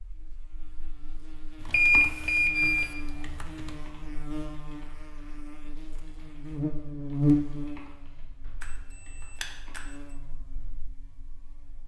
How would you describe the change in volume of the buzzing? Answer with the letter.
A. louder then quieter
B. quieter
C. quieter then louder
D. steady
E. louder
A.